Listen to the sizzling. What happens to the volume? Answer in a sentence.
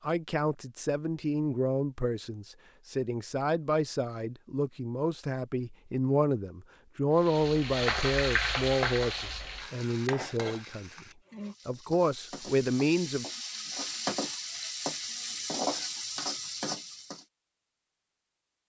The volume of the sizzling goes down, then up.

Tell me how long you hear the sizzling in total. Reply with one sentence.
You can hear the sizzling for 10 seconds altogether.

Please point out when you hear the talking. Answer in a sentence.
You can hear the talking from 0.0 to 10.9 s and from 11.7 to 13.2 s.